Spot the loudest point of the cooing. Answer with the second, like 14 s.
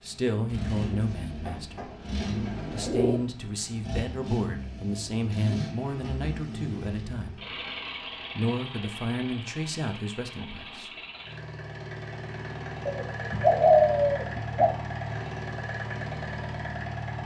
14 s.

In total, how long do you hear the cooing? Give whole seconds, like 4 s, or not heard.
4 s.